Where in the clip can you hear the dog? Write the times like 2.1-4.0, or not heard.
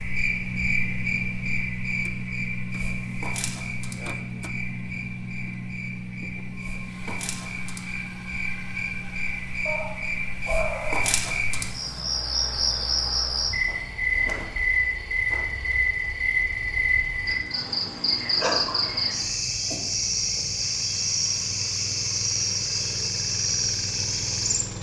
9.7-11.1.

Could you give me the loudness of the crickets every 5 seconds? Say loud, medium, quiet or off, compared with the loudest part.
medium, medium, loud, loud, loud.